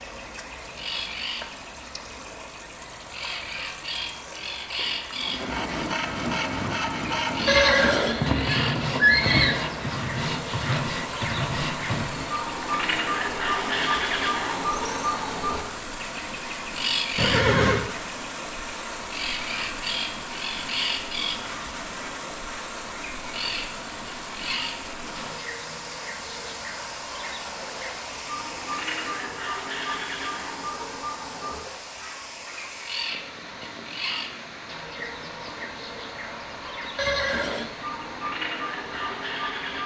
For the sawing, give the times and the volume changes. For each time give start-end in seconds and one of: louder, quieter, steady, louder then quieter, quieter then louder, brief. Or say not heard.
5.2-12.2 steady.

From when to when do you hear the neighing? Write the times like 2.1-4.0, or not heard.
7.5-9.6, 17.1-17.9, 37.0-37.8.